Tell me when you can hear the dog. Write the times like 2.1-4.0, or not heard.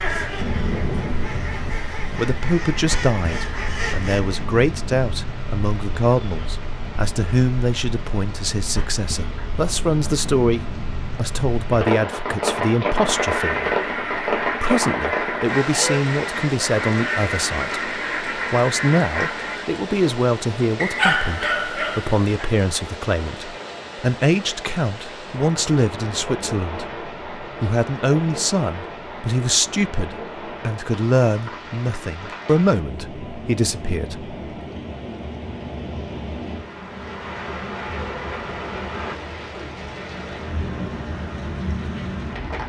20.8-22.2.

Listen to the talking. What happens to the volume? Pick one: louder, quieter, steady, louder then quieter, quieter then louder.
steady.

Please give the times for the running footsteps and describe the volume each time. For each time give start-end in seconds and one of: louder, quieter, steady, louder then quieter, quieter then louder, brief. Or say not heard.
not heard.